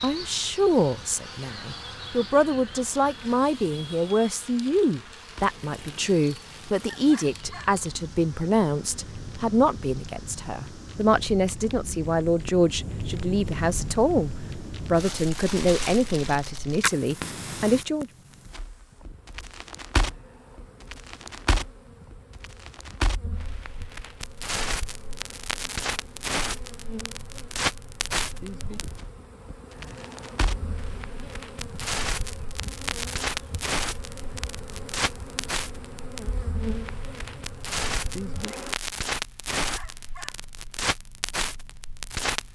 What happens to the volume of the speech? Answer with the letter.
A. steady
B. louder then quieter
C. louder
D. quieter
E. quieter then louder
A.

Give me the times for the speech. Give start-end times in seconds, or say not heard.
0.0-18.1.